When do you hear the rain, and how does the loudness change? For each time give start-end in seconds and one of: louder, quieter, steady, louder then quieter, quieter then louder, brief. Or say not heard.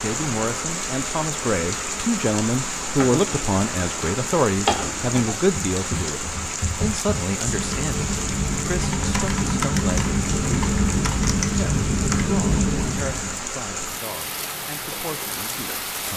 0.0-16.1 steady.